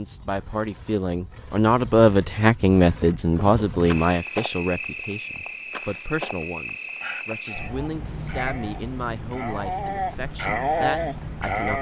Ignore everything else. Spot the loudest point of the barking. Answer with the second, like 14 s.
11 s.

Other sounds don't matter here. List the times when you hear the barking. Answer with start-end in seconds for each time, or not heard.
7.0-11.7.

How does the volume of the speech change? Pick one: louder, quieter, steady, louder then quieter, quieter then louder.
quieter.